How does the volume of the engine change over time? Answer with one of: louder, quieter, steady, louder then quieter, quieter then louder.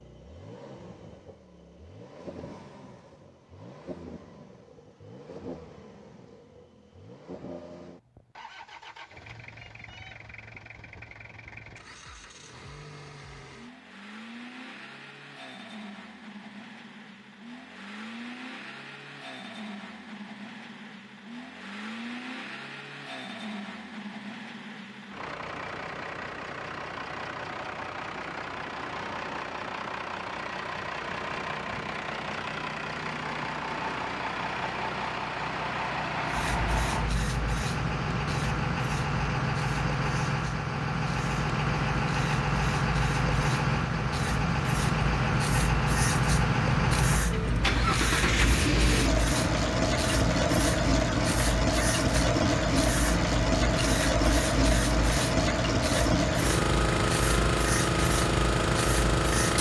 louder.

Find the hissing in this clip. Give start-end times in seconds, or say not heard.
36.2-59.5.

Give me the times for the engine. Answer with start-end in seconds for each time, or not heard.
0.0-59.5.